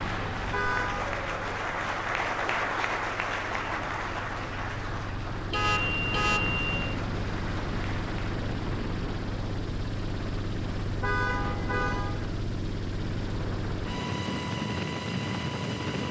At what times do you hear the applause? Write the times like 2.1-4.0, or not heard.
0.0-8.4.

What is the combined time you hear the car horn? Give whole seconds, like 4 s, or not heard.
3 s.